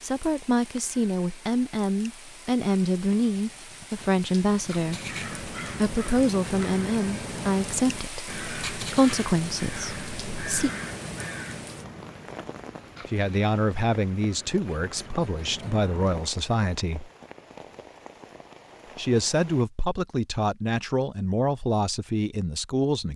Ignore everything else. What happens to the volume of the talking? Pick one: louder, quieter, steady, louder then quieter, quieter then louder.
steady.